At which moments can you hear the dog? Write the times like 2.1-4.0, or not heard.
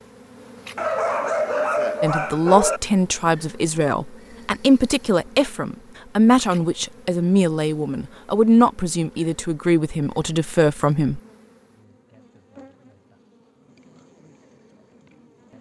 0.8-2.8.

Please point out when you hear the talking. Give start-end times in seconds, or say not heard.
2.0-11.2.